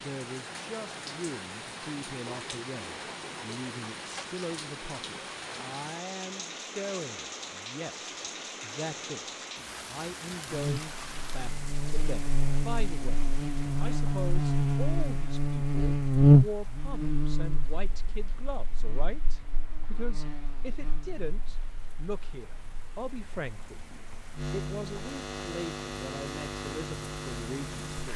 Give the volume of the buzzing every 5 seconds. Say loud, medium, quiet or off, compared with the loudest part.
off, off, medium, loud, quiet, quiet.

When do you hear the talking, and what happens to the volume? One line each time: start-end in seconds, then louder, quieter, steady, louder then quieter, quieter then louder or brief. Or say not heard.
0.0-28.1 steady.